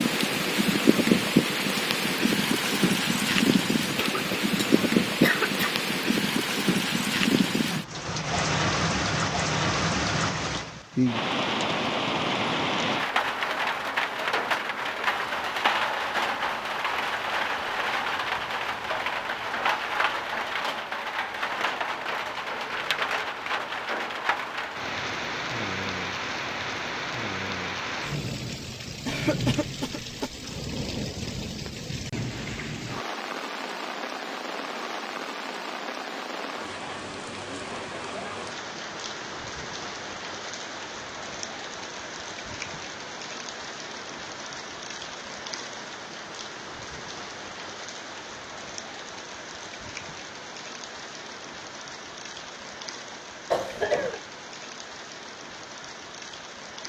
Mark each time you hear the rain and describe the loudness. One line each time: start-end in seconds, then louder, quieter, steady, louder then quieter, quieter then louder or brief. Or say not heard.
0.0-56.8 quieter.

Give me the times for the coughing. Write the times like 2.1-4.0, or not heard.
3.8-5.7, 29.1-30.3, 53.5-54.2.